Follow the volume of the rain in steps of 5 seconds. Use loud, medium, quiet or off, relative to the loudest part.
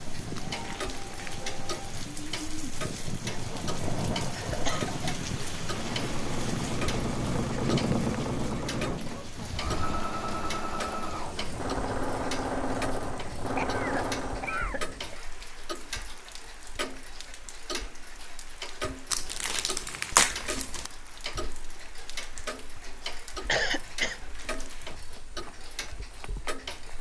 loud, loud, medium, quiet, quiet, quiet.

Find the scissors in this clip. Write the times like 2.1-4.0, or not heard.
not heard.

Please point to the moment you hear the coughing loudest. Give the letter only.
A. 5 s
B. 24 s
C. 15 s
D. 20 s
B.